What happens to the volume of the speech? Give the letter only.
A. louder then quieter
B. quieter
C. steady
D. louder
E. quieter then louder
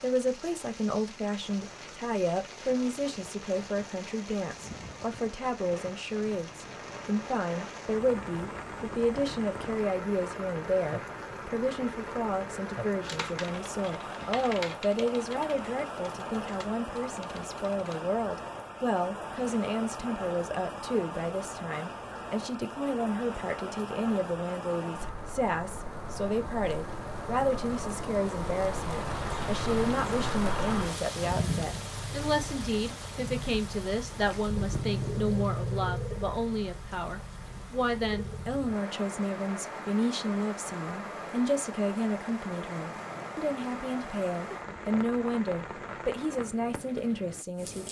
C.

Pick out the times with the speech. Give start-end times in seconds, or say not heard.
0.0-47.8.